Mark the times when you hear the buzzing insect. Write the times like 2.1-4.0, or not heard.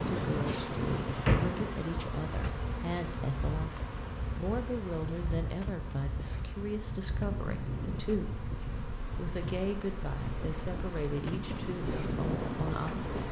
0.0-13.2.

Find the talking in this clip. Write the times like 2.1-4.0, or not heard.
0.0-8.4, 9.2-13.2.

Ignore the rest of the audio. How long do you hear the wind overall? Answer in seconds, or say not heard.
13 s.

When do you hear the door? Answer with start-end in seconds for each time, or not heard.
0.5-1.5.